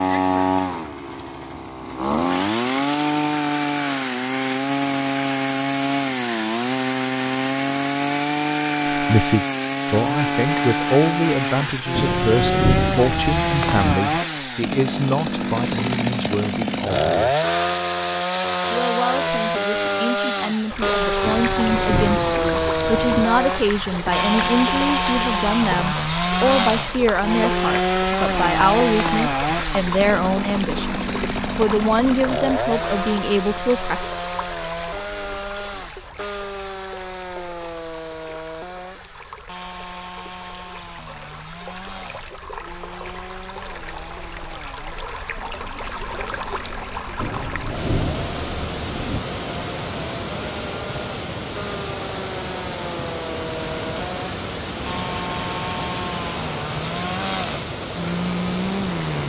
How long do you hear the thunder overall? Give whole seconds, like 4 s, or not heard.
6 s.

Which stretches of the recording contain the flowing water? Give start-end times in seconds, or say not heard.
20.7-59.2.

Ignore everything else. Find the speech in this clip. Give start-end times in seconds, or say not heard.
8.9-17.4, 18.7-34.0.